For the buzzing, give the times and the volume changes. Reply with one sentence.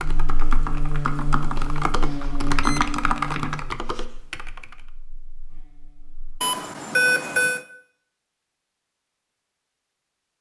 The buzzing can be heard from 0.0 to 6.4 s, getting quieter.